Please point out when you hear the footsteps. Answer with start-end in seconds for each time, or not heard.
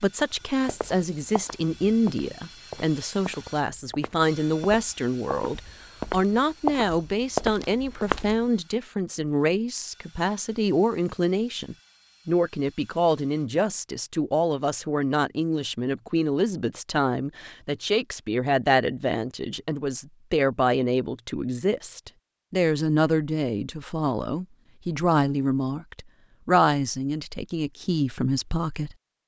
0.7-8.3.